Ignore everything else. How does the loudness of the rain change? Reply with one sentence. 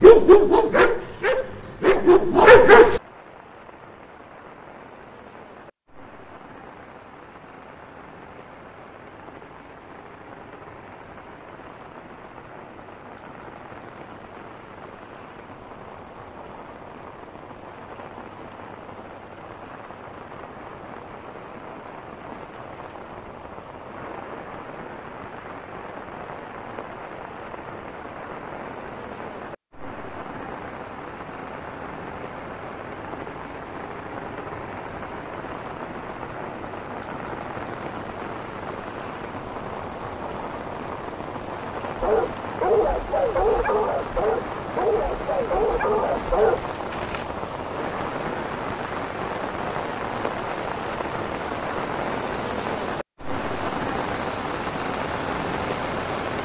The loudness of the rain goes up.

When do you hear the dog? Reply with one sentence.
The dog can be heard from 0.0 to 3.0 s and from 42.0 to 47.2 s.